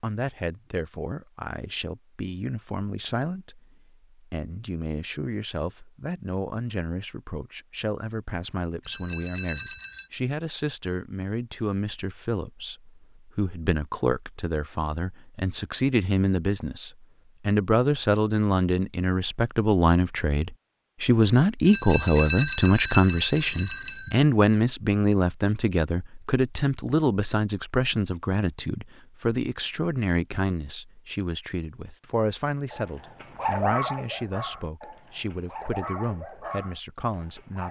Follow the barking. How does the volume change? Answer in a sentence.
The volume of the barking goes down, then up.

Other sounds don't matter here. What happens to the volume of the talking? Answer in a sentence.
The loudness of the talking goes up, then down.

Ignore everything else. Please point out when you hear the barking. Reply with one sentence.
The barking can be heard from 32.7 to 37.6 s.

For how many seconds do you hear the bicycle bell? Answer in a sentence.
You can hear the bicycle bell for 4 seconds altogether.